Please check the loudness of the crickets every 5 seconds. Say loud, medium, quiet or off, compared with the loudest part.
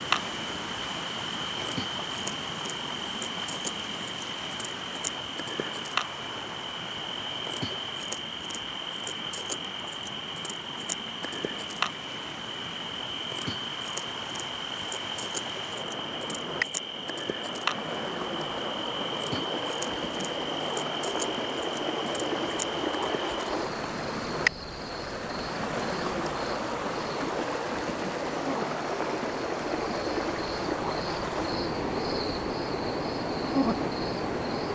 loud, loud, loud, loud, loud, medium, loud.